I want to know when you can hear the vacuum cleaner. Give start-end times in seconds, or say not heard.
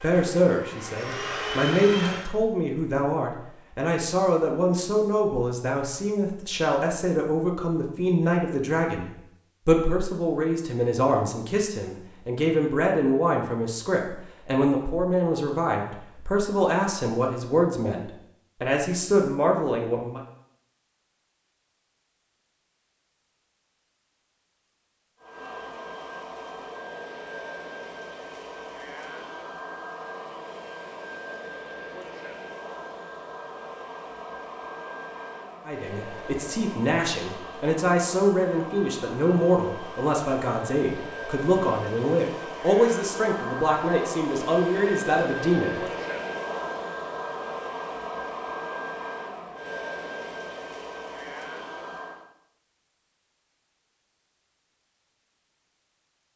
0.0-2.4, 25.2-52.2.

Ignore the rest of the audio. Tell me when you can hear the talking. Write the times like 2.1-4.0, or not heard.
0.0-20.2, 35.6-45.8.